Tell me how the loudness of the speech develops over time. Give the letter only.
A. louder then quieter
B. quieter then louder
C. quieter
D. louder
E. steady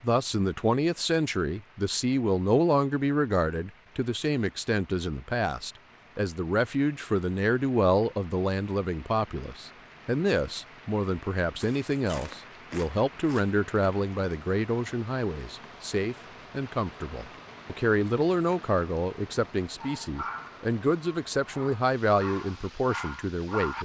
E.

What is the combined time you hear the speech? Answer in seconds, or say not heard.
24 s.